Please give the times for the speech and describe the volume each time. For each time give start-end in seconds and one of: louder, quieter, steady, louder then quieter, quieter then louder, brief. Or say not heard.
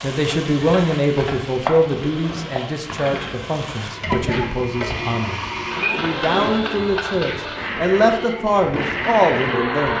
0.0-9.9 quieter then louder.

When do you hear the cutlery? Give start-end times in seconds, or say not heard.
not heard.